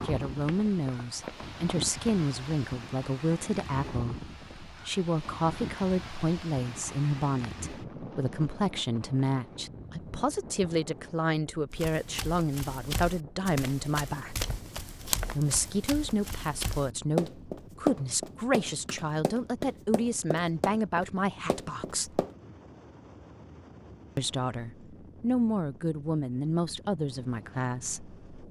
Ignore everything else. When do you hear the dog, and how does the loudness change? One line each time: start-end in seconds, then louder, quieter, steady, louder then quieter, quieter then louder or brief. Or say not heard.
not heard.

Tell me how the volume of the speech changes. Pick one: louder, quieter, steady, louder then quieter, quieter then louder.
steady.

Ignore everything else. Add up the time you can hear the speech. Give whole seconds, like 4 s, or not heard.
25 s.